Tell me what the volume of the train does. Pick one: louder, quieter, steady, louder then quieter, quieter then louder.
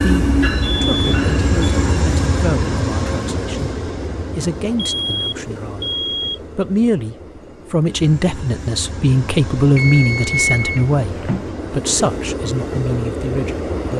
quieter then louder.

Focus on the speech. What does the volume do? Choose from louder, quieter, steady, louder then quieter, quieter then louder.
louder then quieter.